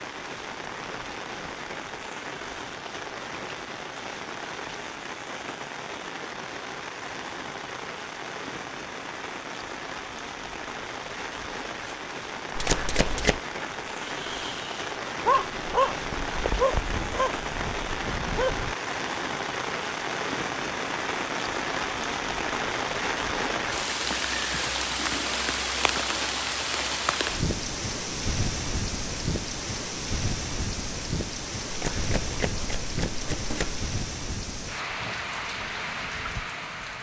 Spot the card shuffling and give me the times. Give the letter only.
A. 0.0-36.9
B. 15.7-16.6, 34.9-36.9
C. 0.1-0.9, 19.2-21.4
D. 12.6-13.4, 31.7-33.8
D.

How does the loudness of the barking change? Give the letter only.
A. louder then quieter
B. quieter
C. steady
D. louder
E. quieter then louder
A.